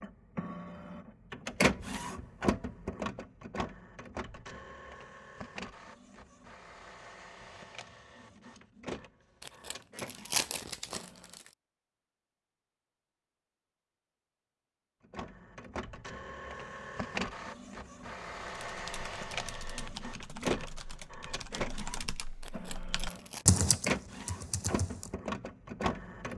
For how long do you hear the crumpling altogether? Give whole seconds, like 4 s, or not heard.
3 s.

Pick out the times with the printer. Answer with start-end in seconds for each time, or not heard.
0.0-11.4, 15.1-26.3.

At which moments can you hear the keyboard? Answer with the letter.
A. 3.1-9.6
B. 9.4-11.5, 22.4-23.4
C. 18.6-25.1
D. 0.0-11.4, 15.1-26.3
C.